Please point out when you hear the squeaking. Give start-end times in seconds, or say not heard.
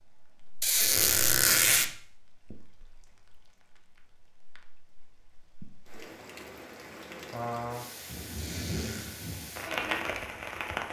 0.6-1.9, 8.3-9.2.